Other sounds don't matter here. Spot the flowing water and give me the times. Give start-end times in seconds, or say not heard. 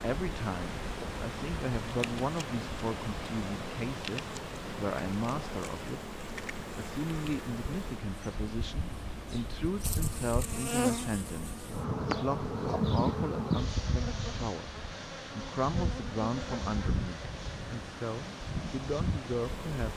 0.0-19.9.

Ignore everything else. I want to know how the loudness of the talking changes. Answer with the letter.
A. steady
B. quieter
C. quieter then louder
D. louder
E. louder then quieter
A.